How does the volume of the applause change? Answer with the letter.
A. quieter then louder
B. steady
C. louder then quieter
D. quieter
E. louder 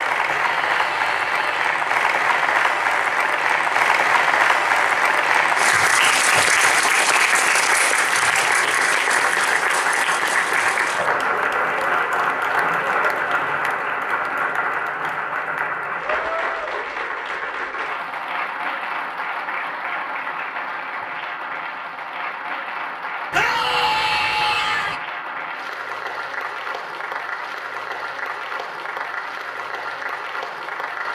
D.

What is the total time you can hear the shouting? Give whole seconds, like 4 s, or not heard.
3 s.